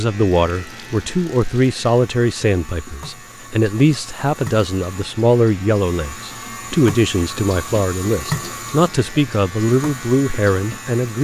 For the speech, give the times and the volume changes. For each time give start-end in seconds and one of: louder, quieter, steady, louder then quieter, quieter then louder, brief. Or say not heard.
0.0-11.1 steady.